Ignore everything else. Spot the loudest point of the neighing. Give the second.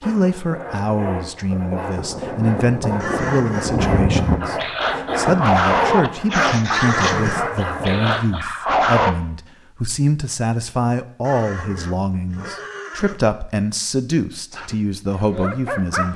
7 s.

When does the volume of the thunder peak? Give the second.
4 s.